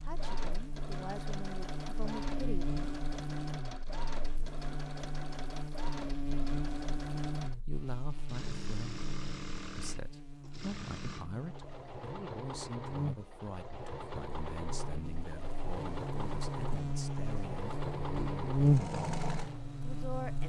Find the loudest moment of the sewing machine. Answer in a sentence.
The volume of the sewing machine peaks at 19 seconds.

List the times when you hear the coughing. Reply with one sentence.
The coughing can't be heard in this clip.